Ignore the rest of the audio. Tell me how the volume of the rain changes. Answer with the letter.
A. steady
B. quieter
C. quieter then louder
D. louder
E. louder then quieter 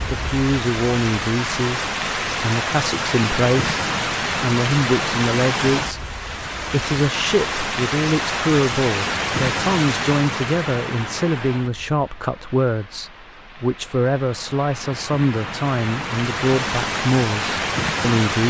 C.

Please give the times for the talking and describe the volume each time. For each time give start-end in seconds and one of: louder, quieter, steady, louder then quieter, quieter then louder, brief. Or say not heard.
0.1-18.4 steady.